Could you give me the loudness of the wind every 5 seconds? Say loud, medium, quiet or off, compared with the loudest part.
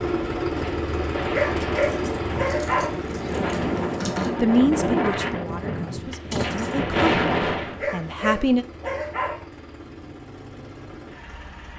loud, loud, off.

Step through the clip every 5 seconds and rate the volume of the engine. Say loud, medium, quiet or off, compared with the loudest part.
loud, quiet, quiet.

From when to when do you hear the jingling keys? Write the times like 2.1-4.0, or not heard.
1.8-4.3, 6.3-6.8.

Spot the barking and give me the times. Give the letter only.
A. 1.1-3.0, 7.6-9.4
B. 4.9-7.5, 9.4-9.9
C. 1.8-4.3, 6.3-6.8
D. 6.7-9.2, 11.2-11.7
A.